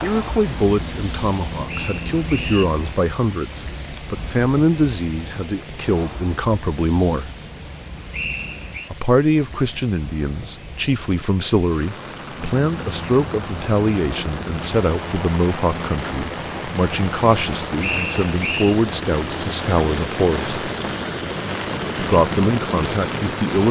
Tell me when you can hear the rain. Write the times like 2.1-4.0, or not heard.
0.0-23.6.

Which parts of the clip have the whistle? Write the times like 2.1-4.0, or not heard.
1.6-2.6, 8.1-8.9, 17.8-18.8.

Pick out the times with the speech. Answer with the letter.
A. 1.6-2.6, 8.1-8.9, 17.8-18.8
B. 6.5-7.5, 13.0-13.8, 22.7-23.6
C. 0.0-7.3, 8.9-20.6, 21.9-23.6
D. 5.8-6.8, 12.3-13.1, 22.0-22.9
C.